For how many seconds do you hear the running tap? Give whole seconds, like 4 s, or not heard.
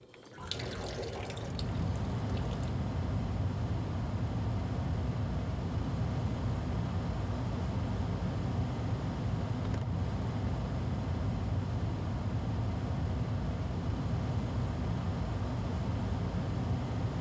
3 s.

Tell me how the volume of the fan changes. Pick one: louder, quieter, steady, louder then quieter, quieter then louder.
steady.